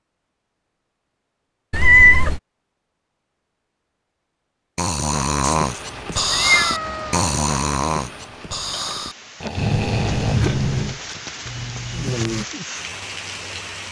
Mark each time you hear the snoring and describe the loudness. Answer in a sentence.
The snoring can be heard from 4.8 to 12.4 s, getting quieter.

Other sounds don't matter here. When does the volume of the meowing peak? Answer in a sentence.
The loudest moment of the meowing is at 2 seconds.